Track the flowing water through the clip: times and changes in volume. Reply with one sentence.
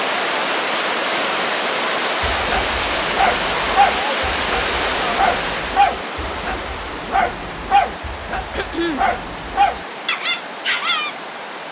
The flowing water can be heard from 0.0 to 11.6 s, getting quieter.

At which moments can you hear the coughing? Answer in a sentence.
You can hear the coughing from 8.5 to 9.1 s.